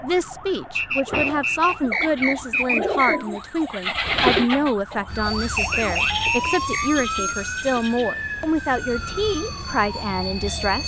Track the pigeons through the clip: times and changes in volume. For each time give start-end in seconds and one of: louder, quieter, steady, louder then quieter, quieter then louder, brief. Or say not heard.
1.1-8.6 louder then quieter.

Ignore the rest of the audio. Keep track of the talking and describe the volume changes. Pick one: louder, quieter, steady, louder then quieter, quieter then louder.
steady.